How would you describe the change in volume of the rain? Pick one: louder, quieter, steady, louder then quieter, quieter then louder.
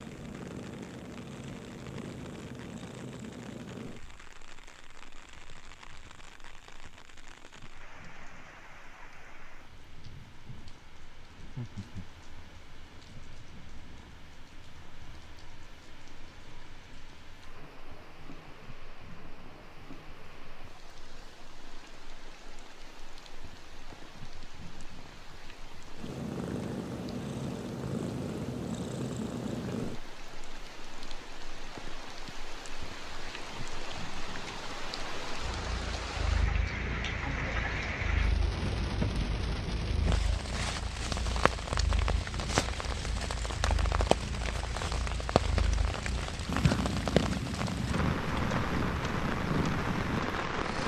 louder.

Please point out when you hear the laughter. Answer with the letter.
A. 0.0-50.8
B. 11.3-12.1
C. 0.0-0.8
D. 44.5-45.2
B.